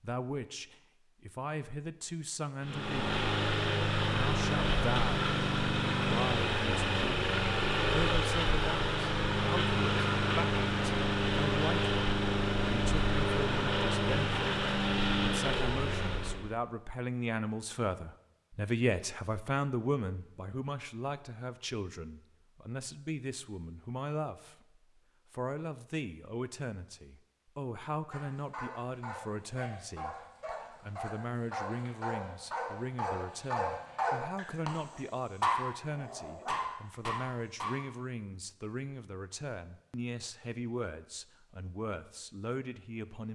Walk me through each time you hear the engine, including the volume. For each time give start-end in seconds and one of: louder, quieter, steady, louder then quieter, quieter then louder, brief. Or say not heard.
2.6-16.6 steady.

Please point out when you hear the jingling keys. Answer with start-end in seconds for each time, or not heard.
not heard.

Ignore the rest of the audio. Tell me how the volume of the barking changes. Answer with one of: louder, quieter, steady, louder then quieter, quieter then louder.
louder then quieter.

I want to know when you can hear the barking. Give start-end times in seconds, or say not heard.
28.1-37.7.